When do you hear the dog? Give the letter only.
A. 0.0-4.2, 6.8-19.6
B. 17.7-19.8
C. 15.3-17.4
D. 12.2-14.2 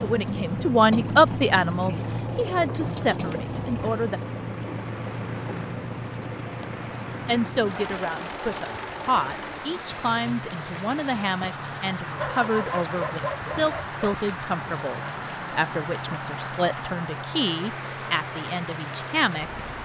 D.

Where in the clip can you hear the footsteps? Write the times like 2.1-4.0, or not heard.
not heard.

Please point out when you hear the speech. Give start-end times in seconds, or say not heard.
0.0-4.2, 6.8-19.6.